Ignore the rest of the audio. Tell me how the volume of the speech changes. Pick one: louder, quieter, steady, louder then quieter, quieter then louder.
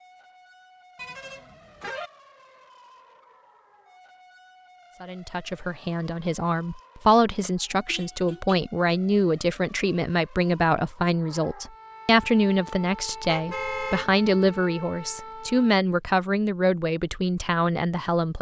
steady.